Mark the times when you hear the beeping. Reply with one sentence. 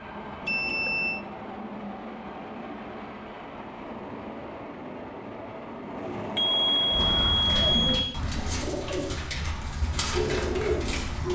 The beeping can be heard from 0.5 to 1.2 s and from 6.3 to 8.2 s.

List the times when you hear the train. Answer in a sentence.
You can hear the train from 0.0 to 7.4 s.